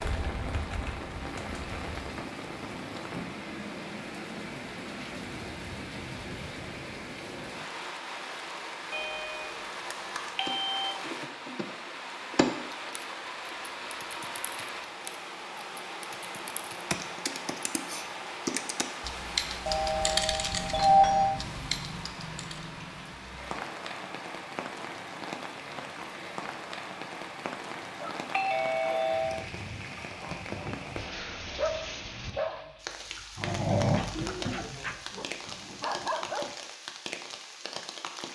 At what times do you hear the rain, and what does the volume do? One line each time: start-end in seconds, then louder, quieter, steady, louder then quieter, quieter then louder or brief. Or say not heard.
0.0-38.3 steady.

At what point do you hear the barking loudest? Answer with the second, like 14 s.
34 s.